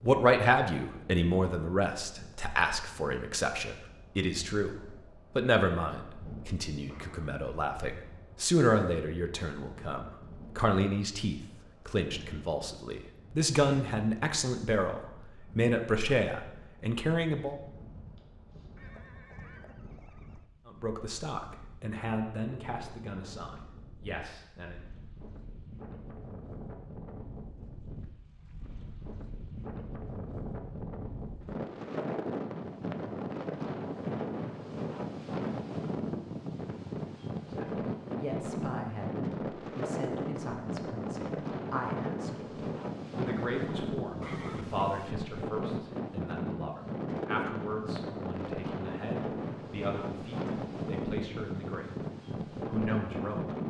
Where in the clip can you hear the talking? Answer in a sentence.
The talking can be heard from 0.0 to 17.6 s, from 20.6 to 24.8 s, from 37.5 to 52.0 s and from 52.6 to 53.6 s.